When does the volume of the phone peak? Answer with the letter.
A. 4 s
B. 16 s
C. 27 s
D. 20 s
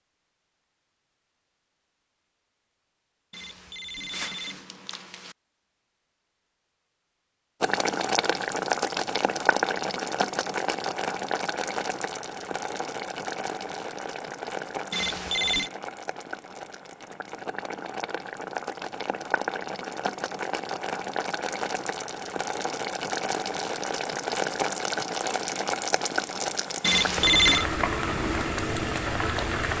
C.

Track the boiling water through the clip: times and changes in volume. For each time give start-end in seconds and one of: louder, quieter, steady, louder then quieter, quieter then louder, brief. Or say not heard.
7.6-29.7 quieter then louder.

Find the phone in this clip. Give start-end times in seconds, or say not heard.
3.3-5.3, 14.9-15.7, 26.8-27.6.